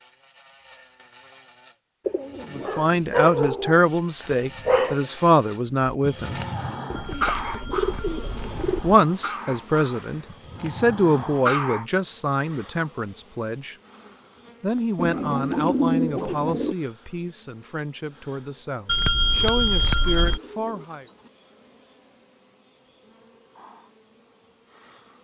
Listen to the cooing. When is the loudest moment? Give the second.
16 s.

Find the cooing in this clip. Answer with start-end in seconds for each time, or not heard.
2.0-3.4, 6.9-8.8, 14.9-16.8, 19.4-21.3.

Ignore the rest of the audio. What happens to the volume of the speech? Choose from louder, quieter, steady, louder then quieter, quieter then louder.
quieter.